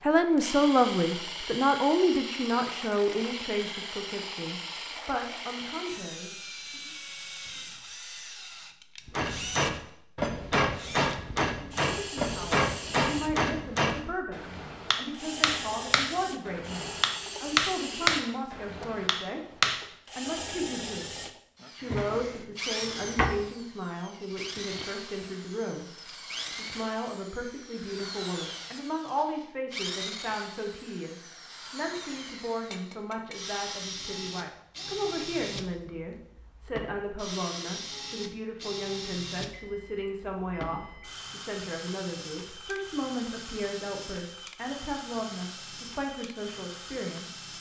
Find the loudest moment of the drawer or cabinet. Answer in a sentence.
The loudest moment of the drawer or cabinet is at 23 seconds.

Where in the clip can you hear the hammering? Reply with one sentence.
The hammering can be heard from 9.2 to 19.9 s.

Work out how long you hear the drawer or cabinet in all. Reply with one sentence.
You can hear the drawer or cabinet for 2 seconds altogether.